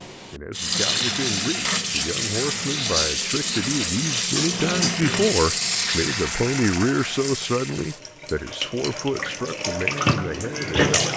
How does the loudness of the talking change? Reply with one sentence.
The volume of the talking goes up, then down.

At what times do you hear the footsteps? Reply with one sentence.
The footsteps can't be heard in this clip.